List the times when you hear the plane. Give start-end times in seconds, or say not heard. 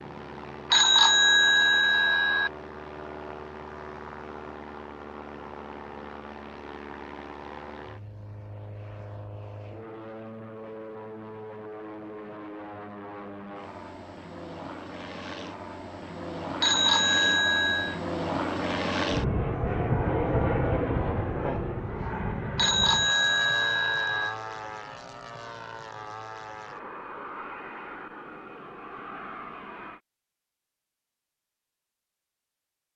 0.0-30.0.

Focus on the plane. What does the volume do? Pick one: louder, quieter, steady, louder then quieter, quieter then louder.
louder then quieter.